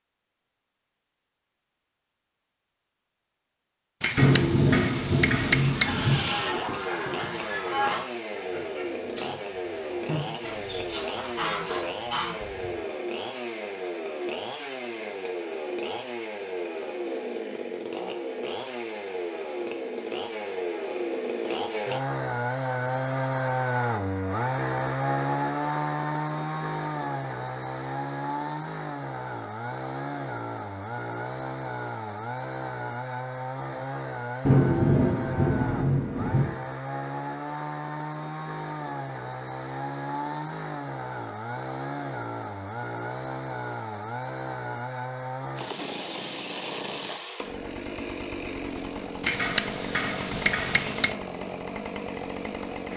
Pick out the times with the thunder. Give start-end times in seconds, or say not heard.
4.2-6.2, 34.5-36.5.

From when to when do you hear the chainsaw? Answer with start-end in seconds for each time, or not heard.
6.2-52.9.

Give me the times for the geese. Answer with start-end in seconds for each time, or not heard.
5.5-12.8.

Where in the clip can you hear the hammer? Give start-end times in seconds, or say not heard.
4.0-6.5, 49.2-51.1.